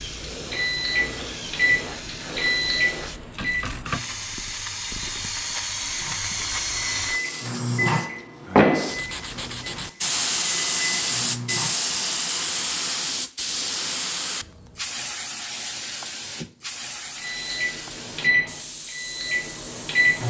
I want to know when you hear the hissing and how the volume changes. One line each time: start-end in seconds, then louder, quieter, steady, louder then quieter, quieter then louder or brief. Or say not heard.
0.0-20.2 louder then quieter.